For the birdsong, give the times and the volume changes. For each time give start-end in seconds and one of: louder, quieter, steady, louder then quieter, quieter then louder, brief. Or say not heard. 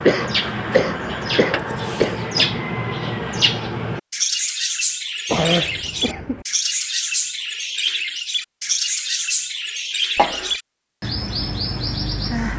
0.0-12.5 steady.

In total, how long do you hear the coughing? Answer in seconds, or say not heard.
4 s.